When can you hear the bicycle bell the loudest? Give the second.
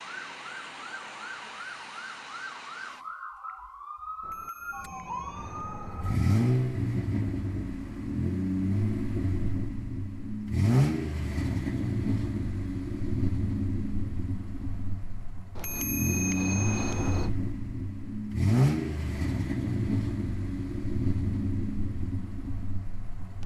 16 s.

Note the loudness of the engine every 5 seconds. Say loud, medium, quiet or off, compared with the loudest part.
off, loud, loud, loud, medium.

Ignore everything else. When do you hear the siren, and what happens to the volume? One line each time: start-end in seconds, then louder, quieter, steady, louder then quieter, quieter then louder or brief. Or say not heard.
0.0-6.4 steady.